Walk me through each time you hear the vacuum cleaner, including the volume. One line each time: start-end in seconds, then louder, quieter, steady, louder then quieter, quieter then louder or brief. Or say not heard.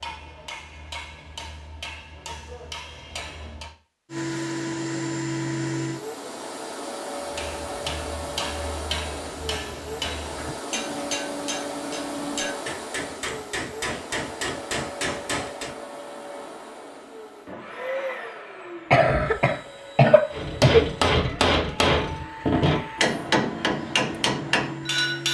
4.1-25.2 quieter.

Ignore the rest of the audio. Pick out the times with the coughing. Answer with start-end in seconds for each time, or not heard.
18.9-20.9.